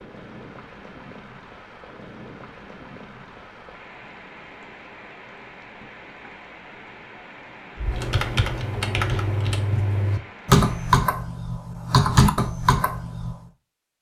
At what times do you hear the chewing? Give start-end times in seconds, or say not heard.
not heard.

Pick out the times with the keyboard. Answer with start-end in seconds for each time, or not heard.
7.8-13.3.